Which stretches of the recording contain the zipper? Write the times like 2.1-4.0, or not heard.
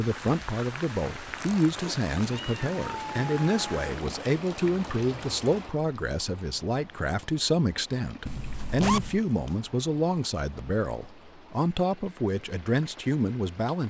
1.4-2.6, 8.6-9.6.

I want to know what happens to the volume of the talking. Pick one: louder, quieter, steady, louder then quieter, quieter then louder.
steady.